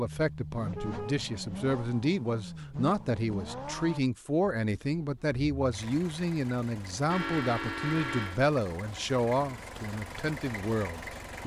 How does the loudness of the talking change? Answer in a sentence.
The loudness of the talking stays about the same.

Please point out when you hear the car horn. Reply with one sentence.
The car horn can be heard from 0.6 to 1.8 s and from 7.1 to 8.4 s.